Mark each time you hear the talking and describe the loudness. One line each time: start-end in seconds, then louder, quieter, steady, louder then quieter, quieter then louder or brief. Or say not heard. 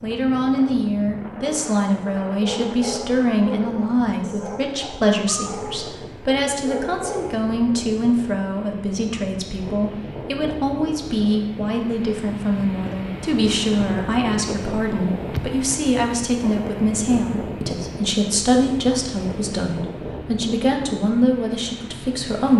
0.0-22.5 steady.